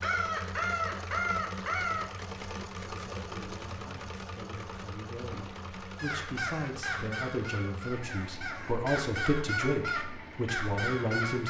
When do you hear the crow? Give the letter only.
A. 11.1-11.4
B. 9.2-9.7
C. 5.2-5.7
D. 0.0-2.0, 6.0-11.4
D.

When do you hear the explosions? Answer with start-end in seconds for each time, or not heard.
5.2-5.7.